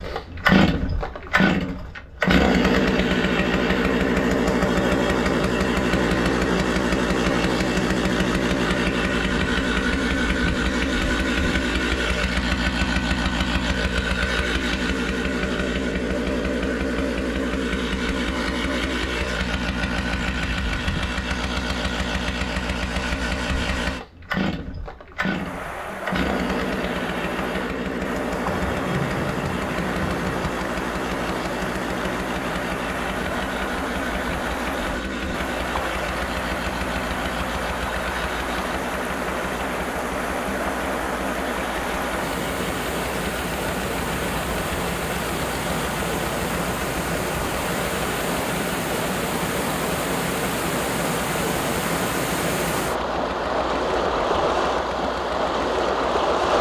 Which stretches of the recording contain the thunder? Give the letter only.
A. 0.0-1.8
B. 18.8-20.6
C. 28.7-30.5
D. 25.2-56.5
C.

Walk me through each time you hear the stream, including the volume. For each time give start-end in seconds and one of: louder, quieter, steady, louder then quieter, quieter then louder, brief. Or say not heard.
25.2-56.5 louder.